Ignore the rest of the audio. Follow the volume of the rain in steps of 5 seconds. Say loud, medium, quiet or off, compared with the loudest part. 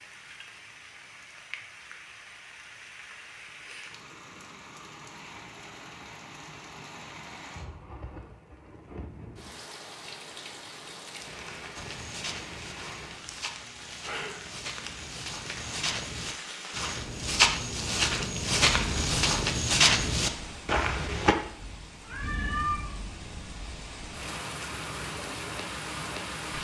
medium, medium, medium, medium, medium, loud.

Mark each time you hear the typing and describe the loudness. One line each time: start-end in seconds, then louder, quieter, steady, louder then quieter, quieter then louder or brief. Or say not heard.
not heard.